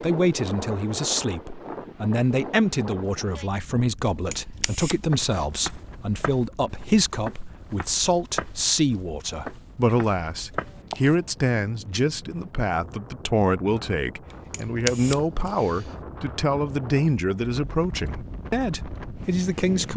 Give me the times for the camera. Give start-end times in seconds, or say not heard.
4.3-5.5, 14.3-15.9.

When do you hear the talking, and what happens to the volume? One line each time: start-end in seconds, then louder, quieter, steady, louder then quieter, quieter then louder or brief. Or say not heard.
0.0-19.9 steady.